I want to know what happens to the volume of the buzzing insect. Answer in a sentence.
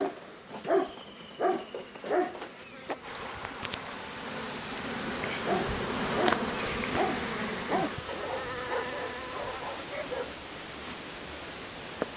The loudness of the buzzing insect goes up, then down.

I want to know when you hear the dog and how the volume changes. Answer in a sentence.
You can hear the dog briefly from 0.0 to 3.0 s; and from 5.5 to 10.3 s, getting quieter.